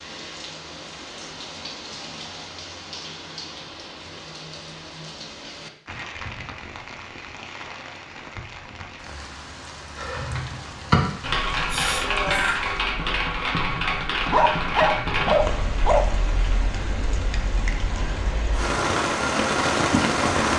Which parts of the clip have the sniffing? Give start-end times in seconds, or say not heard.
11.7-12.6.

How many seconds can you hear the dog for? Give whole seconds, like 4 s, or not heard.
2 s.